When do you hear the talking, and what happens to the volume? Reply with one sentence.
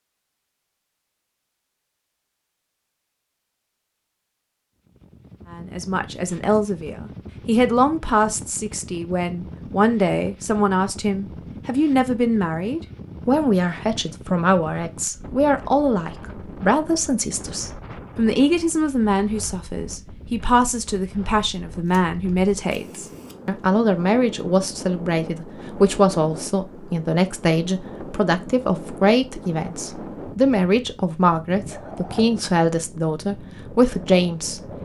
You can hear the talking from 5.5 to 34.6 s, at a steady volume.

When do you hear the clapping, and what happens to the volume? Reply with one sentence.
The clapping can't be heard in this clip.